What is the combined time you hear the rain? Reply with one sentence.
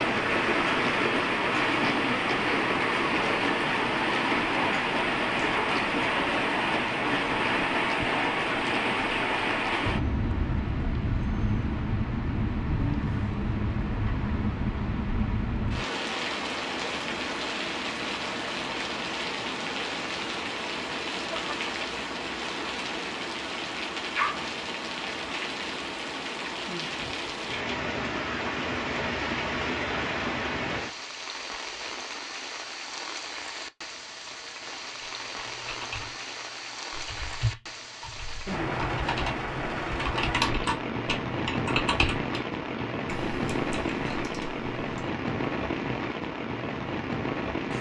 The rain can be heard for 48 seconds in total.